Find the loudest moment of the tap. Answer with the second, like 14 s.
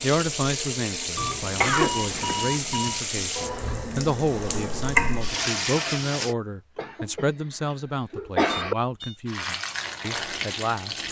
5 s.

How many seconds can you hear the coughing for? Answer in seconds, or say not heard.
2 s.